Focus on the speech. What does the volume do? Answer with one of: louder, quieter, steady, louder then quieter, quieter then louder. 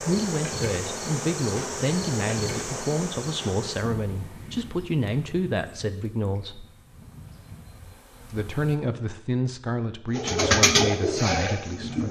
steady.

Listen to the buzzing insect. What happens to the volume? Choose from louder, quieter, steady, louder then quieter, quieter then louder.
quieter.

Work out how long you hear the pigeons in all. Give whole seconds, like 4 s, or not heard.
2 s.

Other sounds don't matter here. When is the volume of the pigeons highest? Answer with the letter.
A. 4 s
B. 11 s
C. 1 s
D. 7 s
B.